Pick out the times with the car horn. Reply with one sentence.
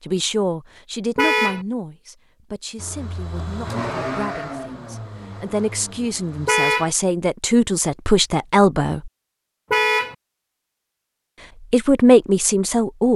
You can hear the car horn from 1.1 to 1.6 s, from 6.5 to 6.9 s and from 9.7 to 10.2 s.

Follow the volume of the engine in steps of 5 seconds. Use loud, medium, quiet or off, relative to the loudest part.
loud, medium, off.